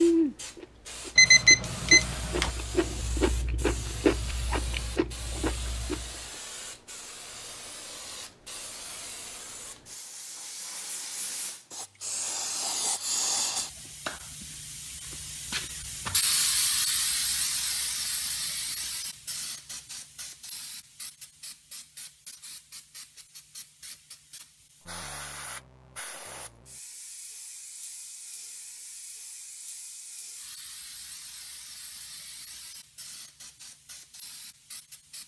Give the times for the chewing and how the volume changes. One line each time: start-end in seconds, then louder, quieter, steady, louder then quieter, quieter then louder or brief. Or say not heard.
0.0-6.2 louder then quieter.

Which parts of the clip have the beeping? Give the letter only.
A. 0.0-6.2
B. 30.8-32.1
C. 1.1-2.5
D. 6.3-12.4
C.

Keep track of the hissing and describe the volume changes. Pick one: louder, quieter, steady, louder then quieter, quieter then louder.
louder then quieter.